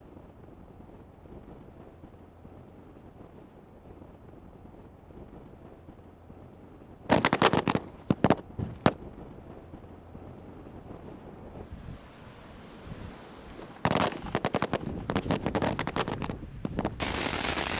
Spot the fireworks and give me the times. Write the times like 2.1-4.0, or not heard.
7.0-8.9, 13.6-17.7.